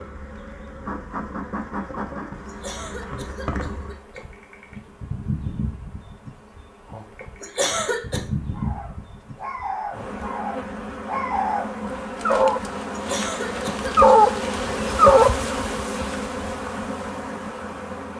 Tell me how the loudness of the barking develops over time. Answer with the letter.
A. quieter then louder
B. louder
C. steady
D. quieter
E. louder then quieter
B.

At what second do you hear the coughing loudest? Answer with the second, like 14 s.
8 s.